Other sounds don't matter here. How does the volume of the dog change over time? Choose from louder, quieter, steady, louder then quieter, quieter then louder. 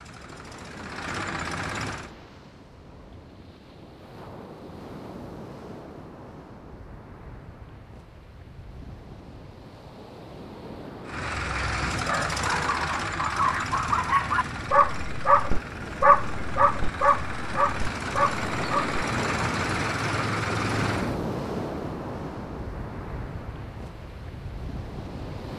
louder then quieter.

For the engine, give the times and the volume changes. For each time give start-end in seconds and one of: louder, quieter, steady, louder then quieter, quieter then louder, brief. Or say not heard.
0.0-2.1 brief
11.1-21.2 quieter then louder.